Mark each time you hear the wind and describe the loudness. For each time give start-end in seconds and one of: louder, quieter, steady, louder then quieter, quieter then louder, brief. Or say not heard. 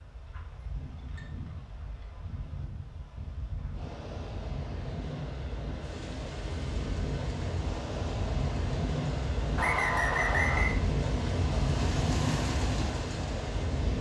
0.0-13.9 louder.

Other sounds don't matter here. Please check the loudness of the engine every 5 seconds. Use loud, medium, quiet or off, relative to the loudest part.
off, medium, loud.